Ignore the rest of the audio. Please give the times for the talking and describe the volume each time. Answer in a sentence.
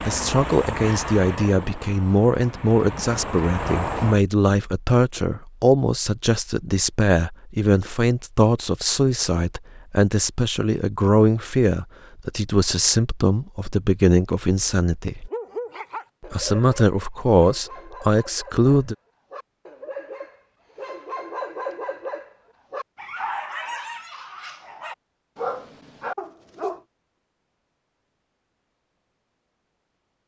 You can hear the talking from 0.0 to 15.3 s, at a steady volume; and briefly from 16.3 to 18.9 s.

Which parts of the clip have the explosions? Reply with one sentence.
You can't hear the explosions here.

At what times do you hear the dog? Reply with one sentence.
You can hear the dog from 15.3 to 26.8 s.